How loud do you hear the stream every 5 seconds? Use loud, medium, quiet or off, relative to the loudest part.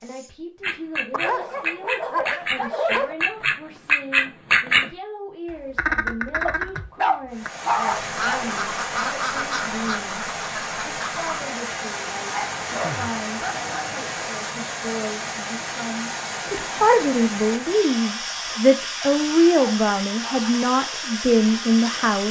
off, loud, loud, loud, loud.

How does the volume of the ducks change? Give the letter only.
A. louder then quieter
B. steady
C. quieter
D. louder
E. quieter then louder
A.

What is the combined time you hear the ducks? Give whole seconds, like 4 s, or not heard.
11 s.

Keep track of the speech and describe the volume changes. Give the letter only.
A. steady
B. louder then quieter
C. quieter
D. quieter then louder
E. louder
E.